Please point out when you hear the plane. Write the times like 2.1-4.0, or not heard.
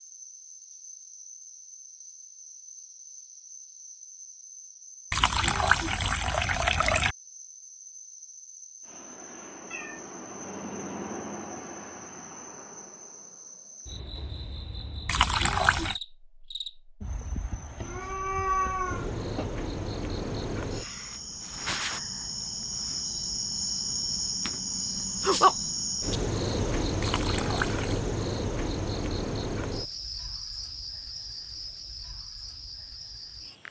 8.8-15.3.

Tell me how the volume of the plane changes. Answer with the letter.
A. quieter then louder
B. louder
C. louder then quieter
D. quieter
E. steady
C.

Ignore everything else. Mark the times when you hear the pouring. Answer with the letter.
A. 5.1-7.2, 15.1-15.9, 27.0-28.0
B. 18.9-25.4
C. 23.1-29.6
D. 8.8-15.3
A.